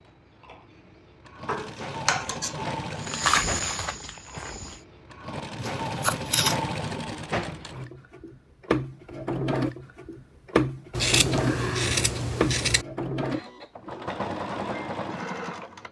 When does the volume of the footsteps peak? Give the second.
3 s.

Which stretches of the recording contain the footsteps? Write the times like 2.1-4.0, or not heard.
3.0-4.8.